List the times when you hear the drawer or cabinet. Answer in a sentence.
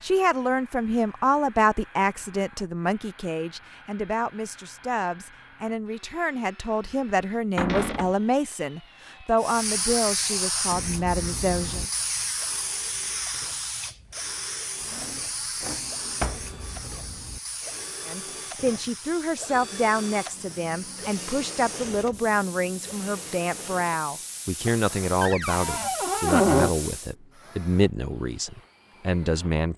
The drawer or cabinet can be heard from 7.5 to 8.1 s, from 14.9 to 16.4 s and from 25.2 to 26.7 s.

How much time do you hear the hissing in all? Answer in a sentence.
The hissing can be heard for 18 seconds in total.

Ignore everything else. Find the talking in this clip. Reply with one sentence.
You can hear the talking from 0.0 to 11.8 s and from 18.1 to 29.7 s.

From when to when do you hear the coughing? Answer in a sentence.
The coughing can't be heard in this clip.